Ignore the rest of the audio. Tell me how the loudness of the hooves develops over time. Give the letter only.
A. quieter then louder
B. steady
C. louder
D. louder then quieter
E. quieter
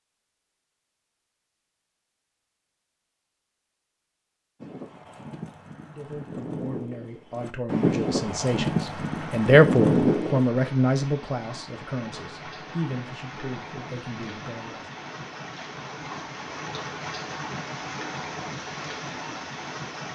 C.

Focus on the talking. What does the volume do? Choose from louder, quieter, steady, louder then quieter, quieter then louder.
louder then quieter.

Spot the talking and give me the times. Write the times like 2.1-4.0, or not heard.
5.8-14.8.